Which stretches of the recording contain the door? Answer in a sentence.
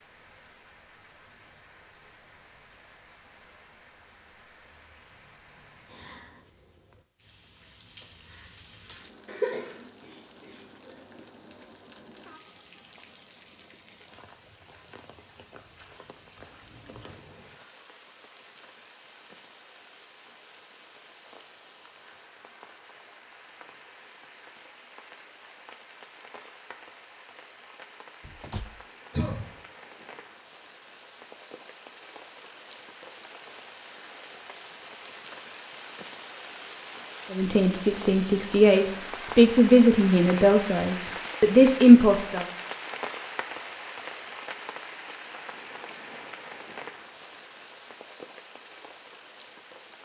You can hear the door from 16.4 to 17.2 s and from 28.2 to 28.8 s.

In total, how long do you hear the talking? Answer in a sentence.
The talking can be heard for 5 seconds in total.